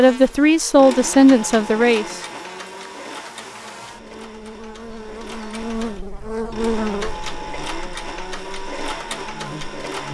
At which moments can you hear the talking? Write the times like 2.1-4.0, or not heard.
0.0-2.2.